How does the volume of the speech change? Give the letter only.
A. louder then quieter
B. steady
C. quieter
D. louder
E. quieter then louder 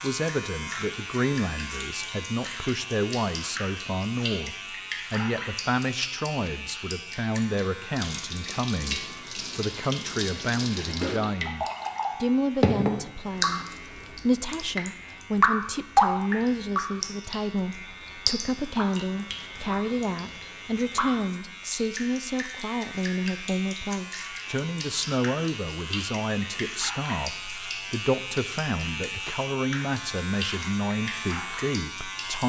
B.